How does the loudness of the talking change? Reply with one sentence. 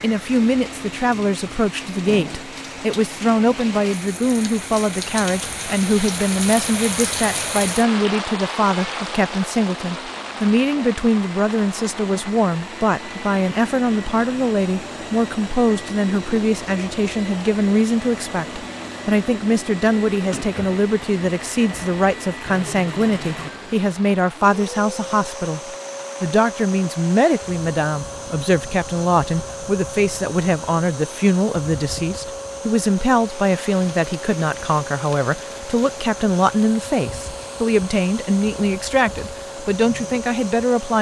The volume of the talking stays about the same.